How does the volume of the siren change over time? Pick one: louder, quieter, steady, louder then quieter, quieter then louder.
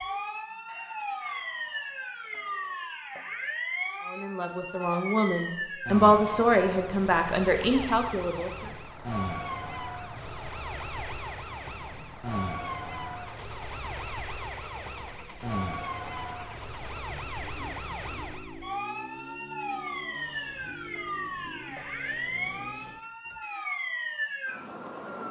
steady.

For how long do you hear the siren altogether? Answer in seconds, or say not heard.
25 s.